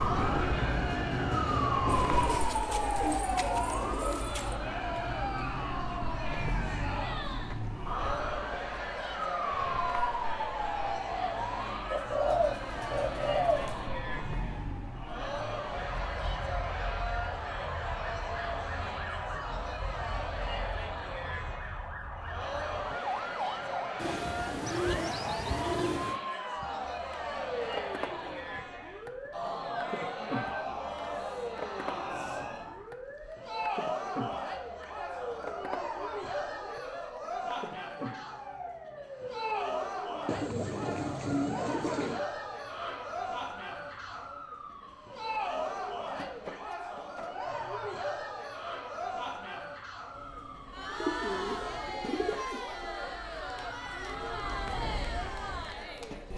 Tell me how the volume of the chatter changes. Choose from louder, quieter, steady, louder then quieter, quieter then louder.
steady.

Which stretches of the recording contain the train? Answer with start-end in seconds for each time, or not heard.
0.0-2.4, 50.1-56.3.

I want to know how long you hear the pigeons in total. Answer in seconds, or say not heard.
10 s.